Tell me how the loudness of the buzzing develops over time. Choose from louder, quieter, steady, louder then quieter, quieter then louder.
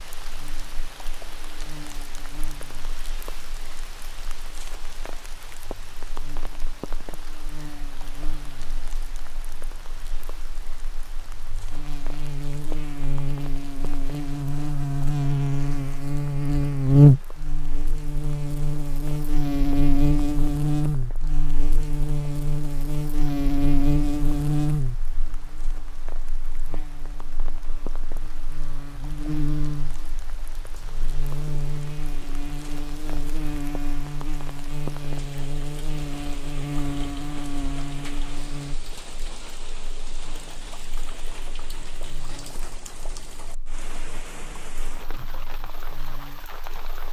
louder then quieter.